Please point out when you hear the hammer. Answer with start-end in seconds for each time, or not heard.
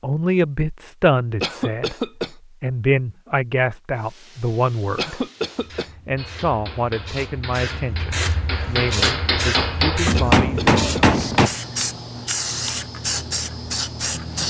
6.2-11.5.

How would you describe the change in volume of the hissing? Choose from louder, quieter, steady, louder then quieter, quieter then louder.
louder.